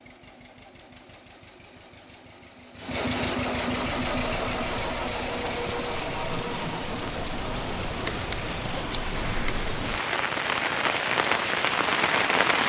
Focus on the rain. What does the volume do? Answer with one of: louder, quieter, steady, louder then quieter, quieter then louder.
louder.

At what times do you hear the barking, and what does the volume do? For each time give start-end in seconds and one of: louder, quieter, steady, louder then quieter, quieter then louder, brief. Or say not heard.
not heard.